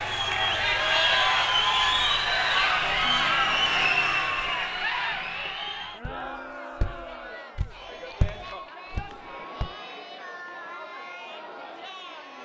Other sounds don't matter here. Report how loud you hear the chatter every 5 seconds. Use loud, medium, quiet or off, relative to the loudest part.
loud, quiet, quiet.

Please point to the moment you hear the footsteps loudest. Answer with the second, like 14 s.
8 s.